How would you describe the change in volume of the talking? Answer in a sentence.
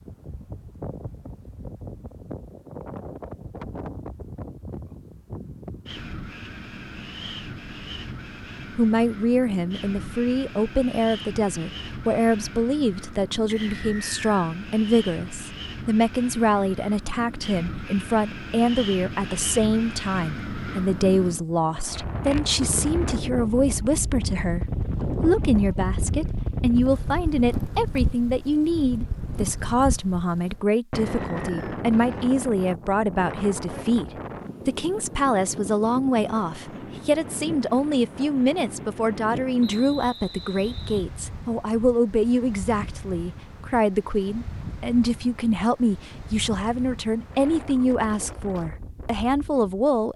The volume of the talking stays about the same.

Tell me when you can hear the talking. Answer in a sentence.
You can hear the talking from 8.8 to 50.1 s.